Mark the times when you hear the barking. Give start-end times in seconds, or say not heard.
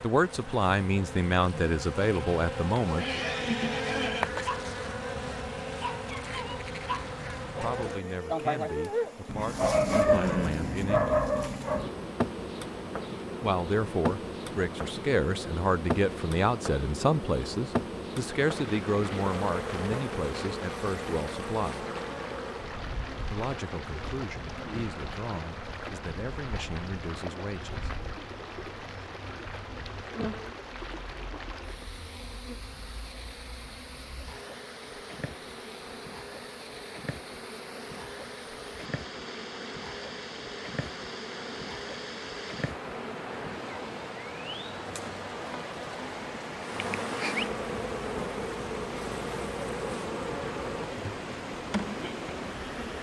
4.3-11.9.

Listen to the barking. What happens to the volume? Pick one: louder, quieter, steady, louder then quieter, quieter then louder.
louder.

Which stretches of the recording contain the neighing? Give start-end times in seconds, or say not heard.
3.0-4.3.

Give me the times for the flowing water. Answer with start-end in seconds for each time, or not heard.
18.4-52.9.